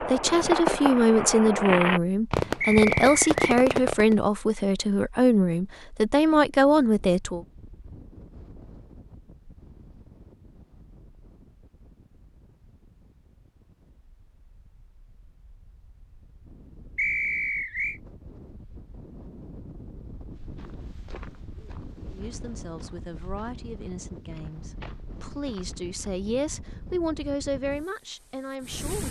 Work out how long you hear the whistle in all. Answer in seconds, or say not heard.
2 s.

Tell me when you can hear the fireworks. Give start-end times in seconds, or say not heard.
0.0-4.2.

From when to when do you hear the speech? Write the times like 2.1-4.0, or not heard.
0.0-7.5, 22.1-29.0.